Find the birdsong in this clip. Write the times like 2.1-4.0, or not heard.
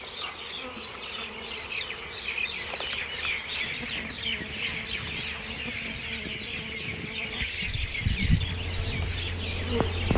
0.0-10.1.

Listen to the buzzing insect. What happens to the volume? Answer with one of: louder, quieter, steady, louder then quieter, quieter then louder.
louder.